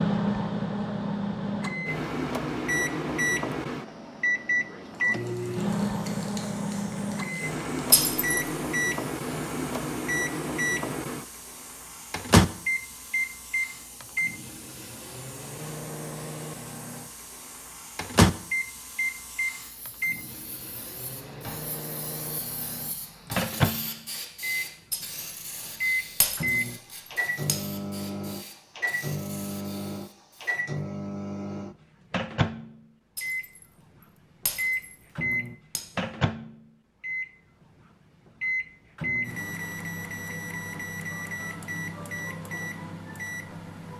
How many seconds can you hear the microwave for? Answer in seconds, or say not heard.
43 s.